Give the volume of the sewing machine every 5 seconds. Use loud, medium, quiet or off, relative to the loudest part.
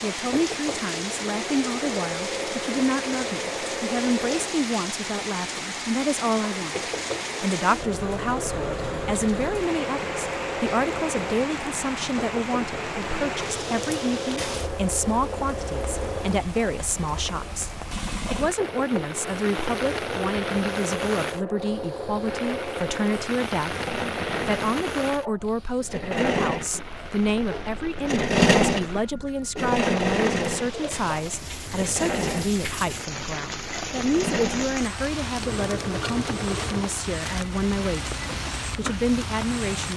medium, medium, medium, medium, medium, loud, loud, medium.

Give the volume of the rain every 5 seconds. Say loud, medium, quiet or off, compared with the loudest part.
loud, loud, loud, loud, loud, medium, loud, loud.